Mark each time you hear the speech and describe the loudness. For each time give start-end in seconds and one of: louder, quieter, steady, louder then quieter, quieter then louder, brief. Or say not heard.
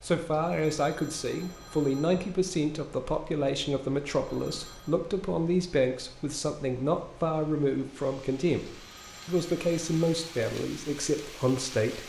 0.0-12.0 steady.